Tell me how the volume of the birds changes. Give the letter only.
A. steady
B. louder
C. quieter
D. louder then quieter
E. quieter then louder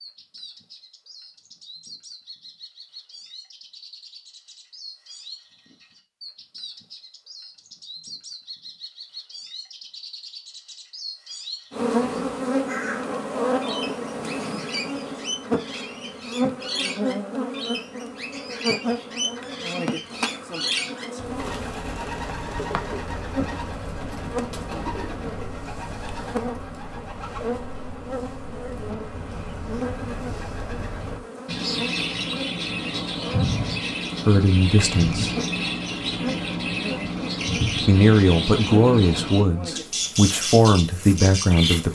B.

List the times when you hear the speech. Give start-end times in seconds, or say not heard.
34.2-35.4, 37.6-41.8.